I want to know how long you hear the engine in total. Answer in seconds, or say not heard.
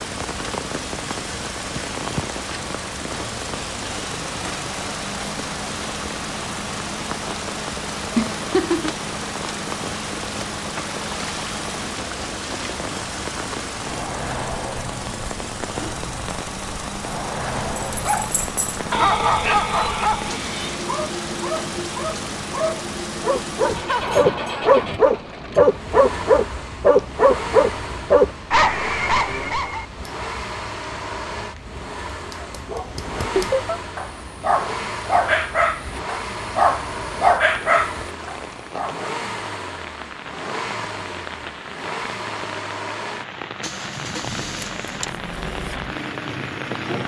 47 s.